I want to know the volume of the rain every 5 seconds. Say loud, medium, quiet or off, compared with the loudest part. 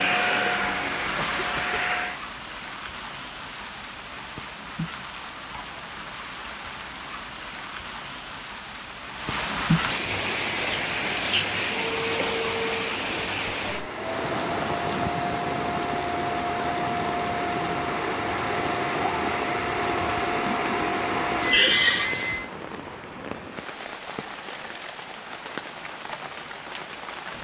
medium, loud, loud, loud, medium, medium.